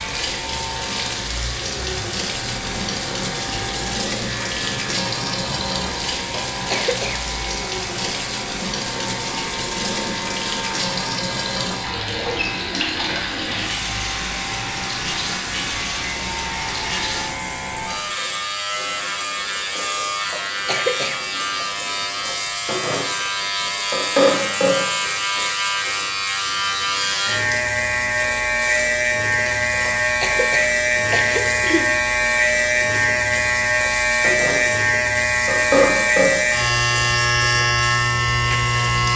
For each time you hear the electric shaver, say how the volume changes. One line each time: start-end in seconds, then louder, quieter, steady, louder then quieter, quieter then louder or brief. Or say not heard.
0.0-39.1 louder.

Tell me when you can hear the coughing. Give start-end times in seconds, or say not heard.
6.5-7.2, 20.3-21.6, 29.9-32.0.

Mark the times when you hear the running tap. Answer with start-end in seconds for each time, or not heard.
0.0-39.1.